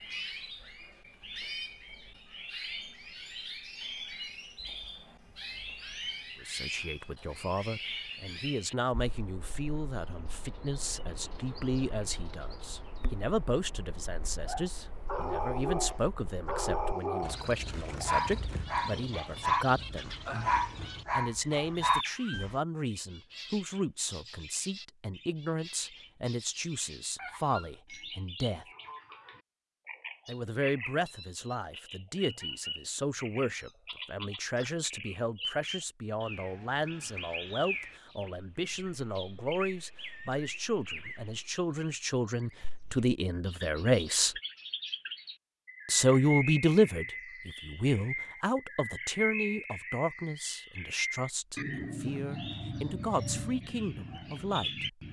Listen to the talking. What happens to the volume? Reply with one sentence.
The volume of the talking goes up.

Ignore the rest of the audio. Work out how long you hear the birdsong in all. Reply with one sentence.
The birdsong can be heard for 55 seconds in total.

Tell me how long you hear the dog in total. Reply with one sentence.
The dog can be heard for 8 seconds in total.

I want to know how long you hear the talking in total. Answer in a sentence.
You can hear the talking for 44 seconds altogether.